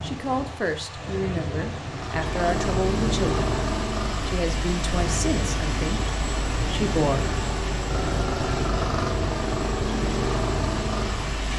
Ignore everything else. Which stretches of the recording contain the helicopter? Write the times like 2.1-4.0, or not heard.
1.9-11.5.